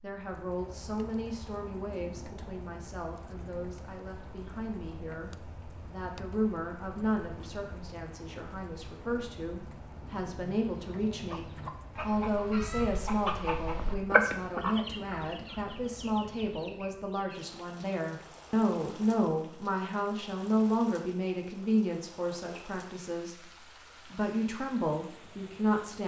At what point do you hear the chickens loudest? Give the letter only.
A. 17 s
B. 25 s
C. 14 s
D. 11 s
C.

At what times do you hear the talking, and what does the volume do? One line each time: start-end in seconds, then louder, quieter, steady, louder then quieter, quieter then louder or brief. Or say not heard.
0.0-23.4 louder
24.1-26.0 brief.